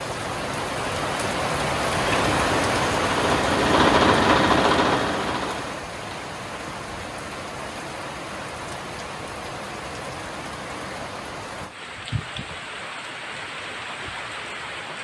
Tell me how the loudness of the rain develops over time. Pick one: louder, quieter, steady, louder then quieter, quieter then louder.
quieter.